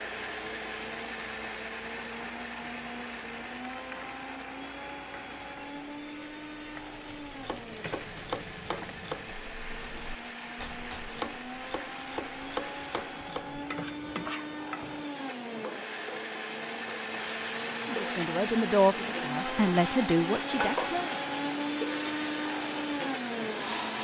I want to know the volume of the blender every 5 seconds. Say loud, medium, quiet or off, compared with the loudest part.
medium, medium, medium, loud, loud.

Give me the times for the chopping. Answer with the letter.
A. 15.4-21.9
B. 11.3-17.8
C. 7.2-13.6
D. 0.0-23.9
C.